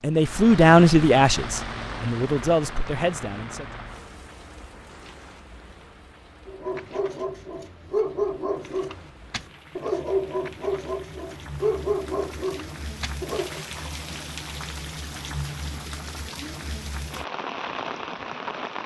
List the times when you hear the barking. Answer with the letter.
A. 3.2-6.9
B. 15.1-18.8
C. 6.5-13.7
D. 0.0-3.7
C.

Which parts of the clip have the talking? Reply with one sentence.
The talking can be heard from 0.0 to 3.7 s.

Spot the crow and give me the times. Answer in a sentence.
The crow can't be heard in this clip.